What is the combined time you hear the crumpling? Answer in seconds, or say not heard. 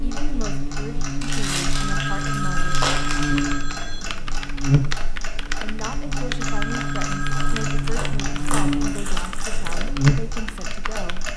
5 s.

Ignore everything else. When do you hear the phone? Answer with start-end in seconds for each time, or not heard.
1.7-4.2, 6.3-7.8.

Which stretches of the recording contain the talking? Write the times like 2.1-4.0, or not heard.
0.0-2.9, 5.6-11.2.